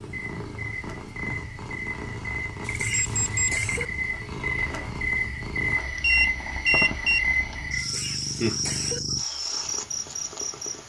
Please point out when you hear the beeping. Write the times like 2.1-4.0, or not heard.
2.6-3.9, 6.0-7.2.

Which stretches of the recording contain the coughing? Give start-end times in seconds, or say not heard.
2.6-3.9, 7.8-9.0.